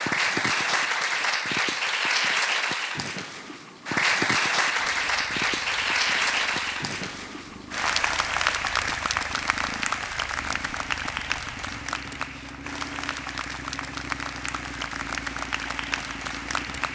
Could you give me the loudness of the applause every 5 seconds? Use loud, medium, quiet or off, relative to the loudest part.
loud, loud, medium, medium.